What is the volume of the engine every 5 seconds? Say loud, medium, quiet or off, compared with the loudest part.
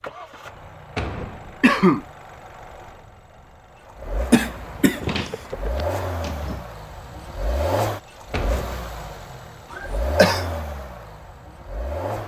medium, loud, loud.